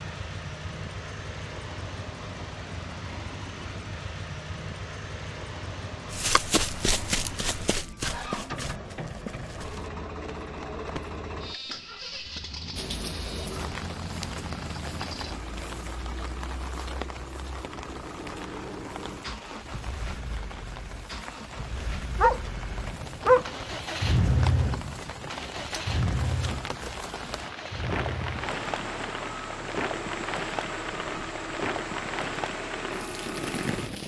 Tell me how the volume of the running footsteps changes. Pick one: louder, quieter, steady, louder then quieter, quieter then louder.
quieter.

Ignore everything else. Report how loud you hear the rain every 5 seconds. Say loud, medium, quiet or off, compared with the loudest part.
off, off, loud, medium, medium, loud, loud.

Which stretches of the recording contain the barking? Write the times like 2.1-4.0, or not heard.
22.1-23.4.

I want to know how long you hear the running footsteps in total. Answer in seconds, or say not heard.
5 s.